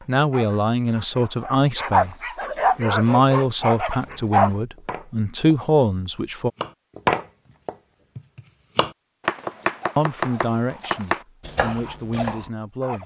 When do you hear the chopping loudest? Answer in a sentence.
The loudest moment of the chopping is at 7 seconds.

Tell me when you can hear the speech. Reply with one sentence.
The speech can be heard from 0.1 to 2.1 s, from 2.8 to 6.5 s and from 9.9 to 13.0 s.